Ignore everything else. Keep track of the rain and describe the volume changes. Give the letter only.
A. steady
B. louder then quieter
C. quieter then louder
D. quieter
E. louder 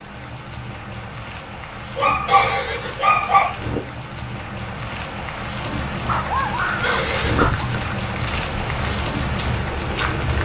E.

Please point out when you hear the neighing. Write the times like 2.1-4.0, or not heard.
2.2-3.0, 6.8-7.6.